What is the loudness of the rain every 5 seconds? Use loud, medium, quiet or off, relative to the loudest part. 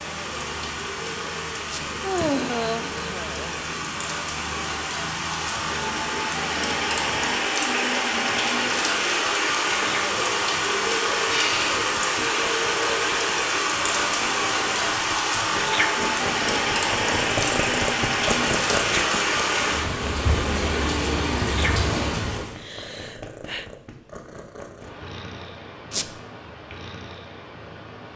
medium, loud, loud, loud, loud, off.